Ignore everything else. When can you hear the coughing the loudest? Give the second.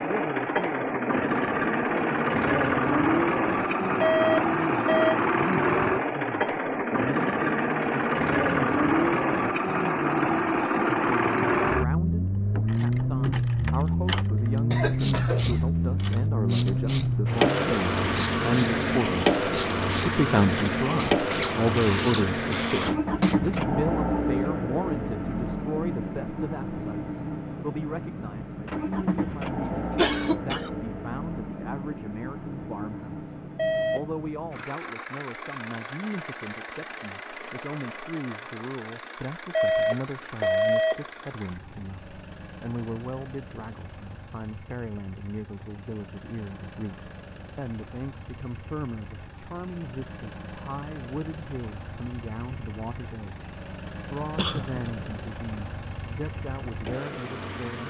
30 s.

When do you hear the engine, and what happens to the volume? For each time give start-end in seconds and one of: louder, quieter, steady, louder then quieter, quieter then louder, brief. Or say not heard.
0.0-57.8 quieter.